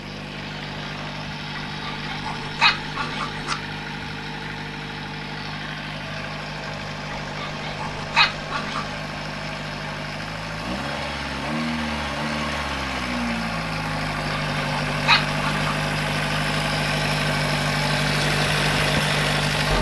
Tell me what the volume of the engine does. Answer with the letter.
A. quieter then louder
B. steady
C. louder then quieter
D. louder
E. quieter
D.